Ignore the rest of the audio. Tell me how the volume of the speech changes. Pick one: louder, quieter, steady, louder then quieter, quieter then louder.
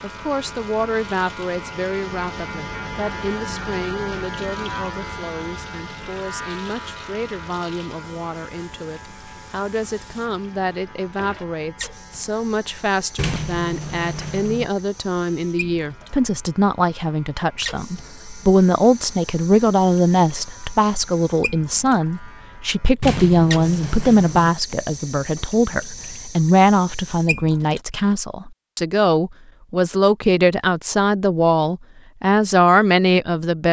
louder.